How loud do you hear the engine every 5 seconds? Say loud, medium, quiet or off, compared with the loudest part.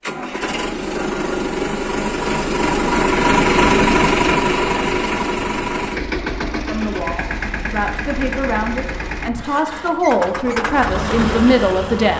loud, medium, medium.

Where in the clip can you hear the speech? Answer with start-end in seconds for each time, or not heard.
6.5-12.1.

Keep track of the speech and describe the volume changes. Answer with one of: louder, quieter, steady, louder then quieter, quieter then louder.
louder.